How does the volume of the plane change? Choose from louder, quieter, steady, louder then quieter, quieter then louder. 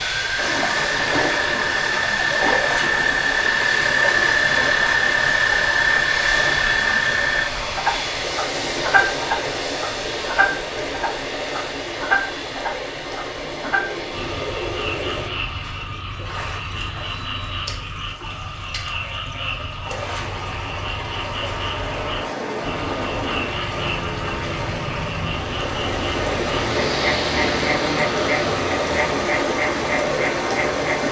quieter then louder.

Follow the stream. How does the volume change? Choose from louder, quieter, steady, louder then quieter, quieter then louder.
quieter then louder.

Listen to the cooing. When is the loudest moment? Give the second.
15 s.